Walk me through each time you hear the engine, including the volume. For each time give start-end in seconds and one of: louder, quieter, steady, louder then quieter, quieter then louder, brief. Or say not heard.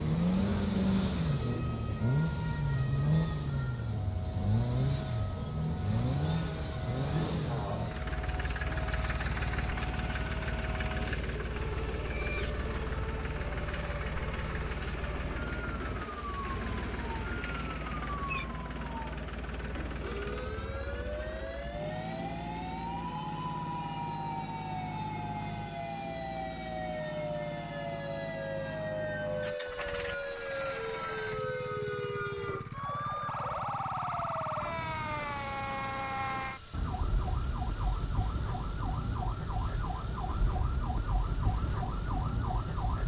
0.0-43.0 quieter.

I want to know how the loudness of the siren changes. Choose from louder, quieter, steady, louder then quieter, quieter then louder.
louder.